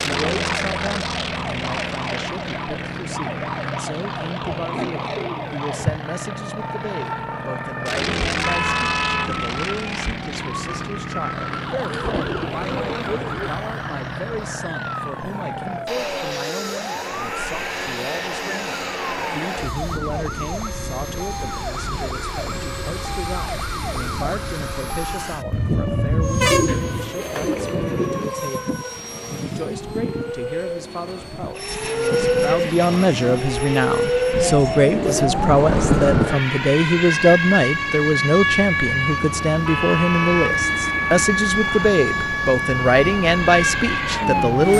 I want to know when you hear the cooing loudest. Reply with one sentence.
The volume of the cooing peaks at 36 seconds.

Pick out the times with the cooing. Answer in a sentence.
You can hear the cooing from 4.5 to 6.0 s, from 11.5 to 13.5 s, from 26.4 to 28.2 s and from 34.3 to 36.2 s.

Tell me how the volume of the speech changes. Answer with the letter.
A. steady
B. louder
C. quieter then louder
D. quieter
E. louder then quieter
B.